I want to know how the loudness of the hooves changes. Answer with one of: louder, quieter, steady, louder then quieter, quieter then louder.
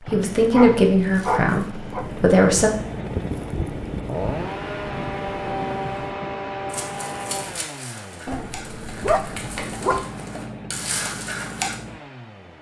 louder.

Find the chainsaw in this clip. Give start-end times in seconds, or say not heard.
0.0-12.5.